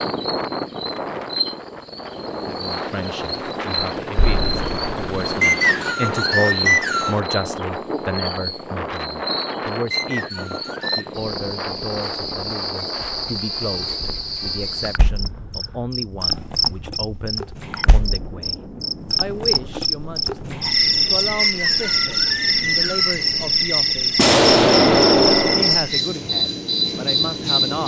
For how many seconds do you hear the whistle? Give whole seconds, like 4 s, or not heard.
5 s.